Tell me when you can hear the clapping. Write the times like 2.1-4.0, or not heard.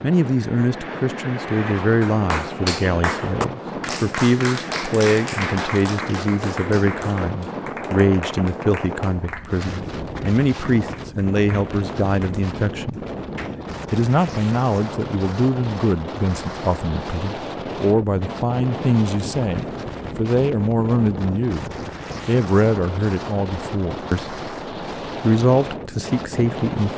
1.8-13.6.